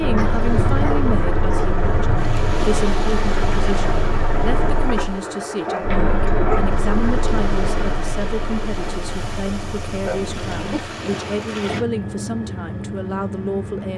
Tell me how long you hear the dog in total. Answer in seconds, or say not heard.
4 s.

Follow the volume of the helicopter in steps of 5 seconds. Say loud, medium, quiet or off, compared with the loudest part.
loud, loud, medium.